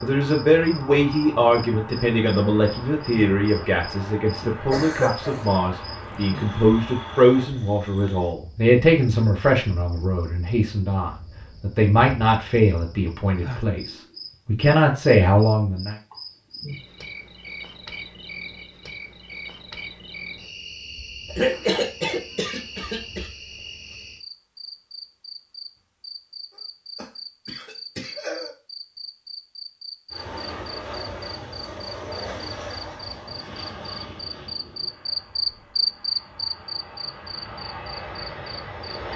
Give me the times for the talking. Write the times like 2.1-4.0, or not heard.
0.0-15.9.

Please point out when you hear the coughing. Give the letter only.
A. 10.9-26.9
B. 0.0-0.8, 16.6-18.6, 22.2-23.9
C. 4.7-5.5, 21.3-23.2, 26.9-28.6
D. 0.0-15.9
C.